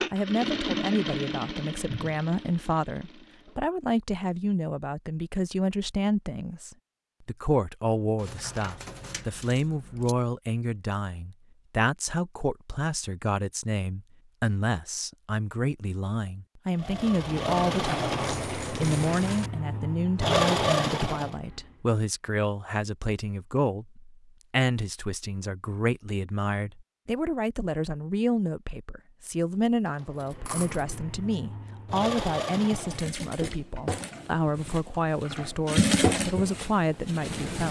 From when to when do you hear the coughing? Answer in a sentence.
The coughing can't be heard in this clip.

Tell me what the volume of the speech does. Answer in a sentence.
The loudness of the speech stays about the same.